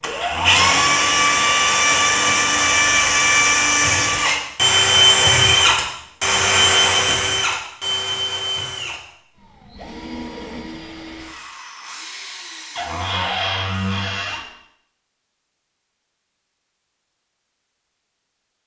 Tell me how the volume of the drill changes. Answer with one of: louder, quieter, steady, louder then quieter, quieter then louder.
quieter.